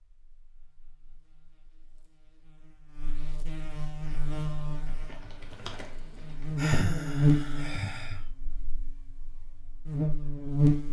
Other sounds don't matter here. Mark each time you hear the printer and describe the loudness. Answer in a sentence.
The printer can't be heard in this clip.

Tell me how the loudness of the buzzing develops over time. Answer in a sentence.
The volume of the buzzing goes up, then down.